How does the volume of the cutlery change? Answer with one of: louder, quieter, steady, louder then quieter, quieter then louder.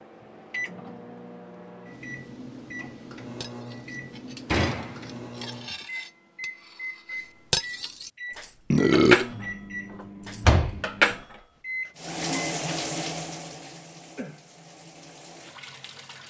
louder then quieter.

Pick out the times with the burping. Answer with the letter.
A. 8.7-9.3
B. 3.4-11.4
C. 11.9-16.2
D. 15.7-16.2
A.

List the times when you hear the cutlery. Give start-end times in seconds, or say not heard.
3.4-11.4.